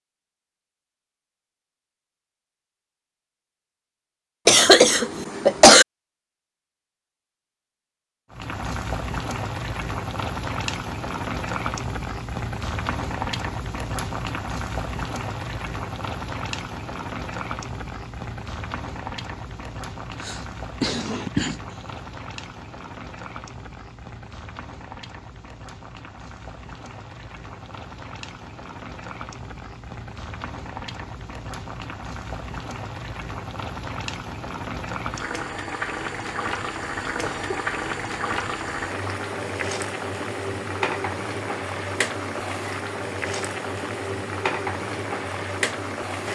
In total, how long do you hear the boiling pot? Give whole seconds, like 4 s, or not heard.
38 s.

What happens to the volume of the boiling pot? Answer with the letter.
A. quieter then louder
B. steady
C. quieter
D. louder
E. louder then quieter
A.